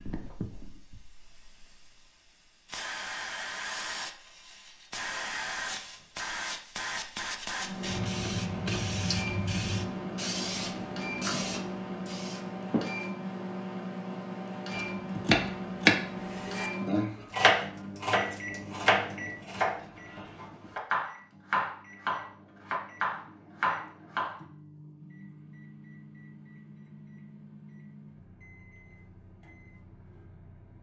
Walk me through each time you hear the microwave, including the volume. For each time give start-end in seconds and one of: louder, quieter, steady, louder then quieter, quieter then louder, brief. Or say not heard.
7.5-30.7 quieter.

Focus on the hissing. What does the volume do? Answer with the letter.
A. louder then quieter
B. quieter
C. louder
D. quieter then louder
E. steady
C.